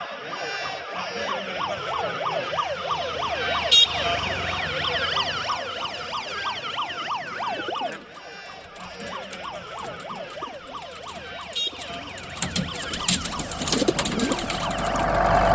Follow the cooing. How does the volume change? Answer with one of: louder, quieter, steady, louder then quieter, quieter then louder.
louder.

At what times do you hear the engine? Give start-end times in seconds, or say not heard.
13.3-15.5.